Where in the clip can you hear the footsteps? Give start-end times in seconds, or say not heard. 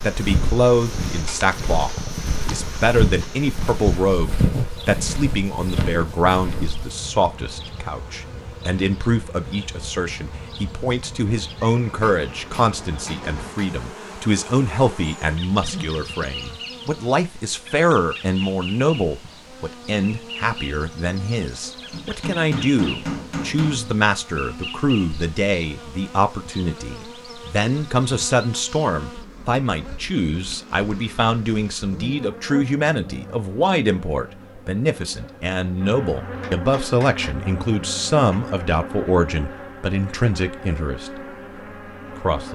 0.1-7.0.